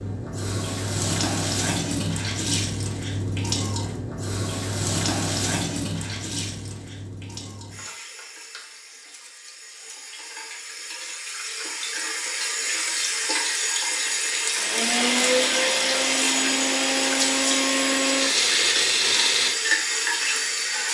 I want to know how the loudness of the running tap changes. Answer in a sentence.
The loudness of the running tap goes down, then up.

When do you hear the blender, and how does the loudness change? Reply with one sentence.
The blender can be heard from 14.6 to 20.8 s, getting quieter.